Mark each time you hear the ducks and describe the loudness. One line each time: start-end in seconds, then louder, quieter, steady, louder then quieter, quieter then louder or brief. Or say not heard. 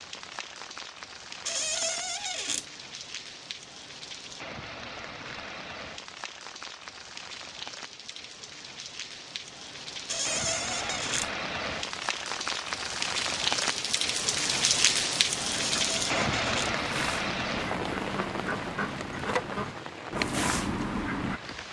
15.6-21.4 louder.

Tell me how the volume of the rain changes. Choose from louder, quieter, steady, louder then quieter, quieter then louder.
louder then quieter.